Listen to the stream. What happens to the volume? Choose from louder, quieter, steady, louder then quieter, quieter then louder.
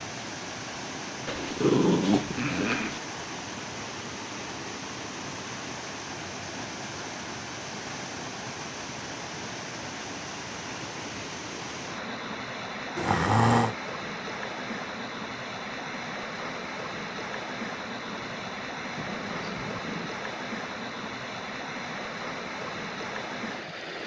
steady.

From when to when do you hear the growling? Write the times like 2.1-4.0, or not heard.
1.2-3.0, 12.9-13.8, 18.1-20.1.